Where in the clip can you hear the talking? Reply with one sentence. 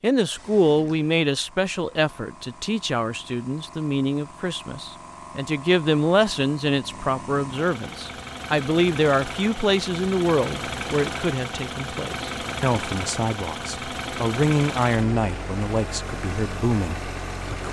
The talking can be heard from 0.0 to 17.6 s.